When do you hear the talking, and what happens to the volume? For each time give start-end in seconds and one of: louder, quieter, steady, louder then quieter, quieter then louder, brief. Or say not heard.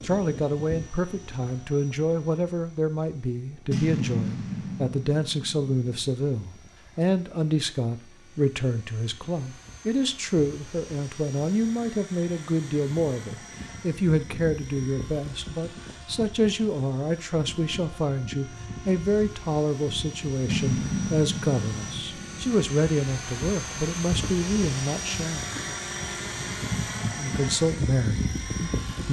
0.0-25.5 steady
27.1-29.0 brief.